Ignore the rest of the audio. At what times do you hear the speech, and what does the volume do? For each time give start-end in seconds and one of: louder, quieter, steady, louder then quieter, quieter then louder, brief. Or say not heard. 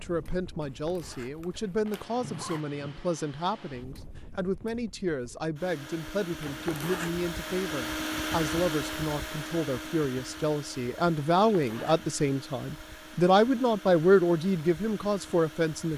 0.0-15.9 louder.